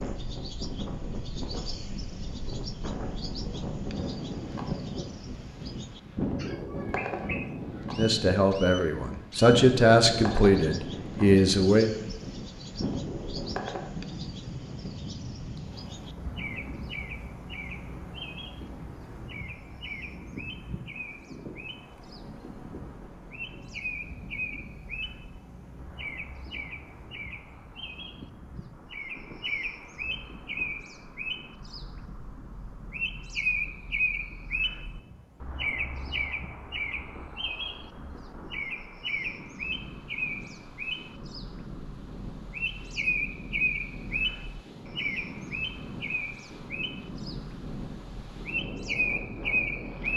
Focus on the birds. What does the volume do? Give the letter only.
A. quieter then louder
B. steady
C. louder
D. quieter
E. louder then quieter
C.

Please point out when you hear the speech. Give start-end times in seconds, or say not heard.
8.0-11.9.